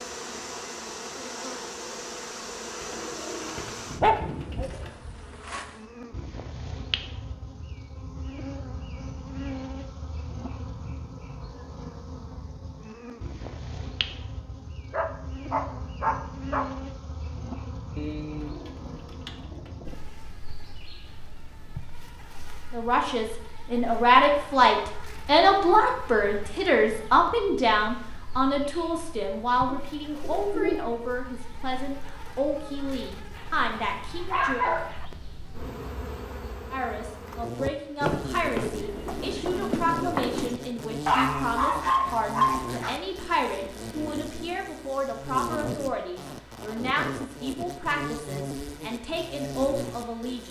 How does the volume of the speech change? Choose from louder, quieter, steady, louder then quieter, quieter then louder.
quieter.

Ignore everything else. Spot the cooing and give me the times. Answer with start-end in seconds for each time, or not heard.
2.7-4.9, 17.9-19.9, 29.6-30.8, 38.0-40.5.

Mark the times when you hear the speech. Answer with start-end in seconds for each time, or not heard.
22.7-34.6, 36.7-50.4.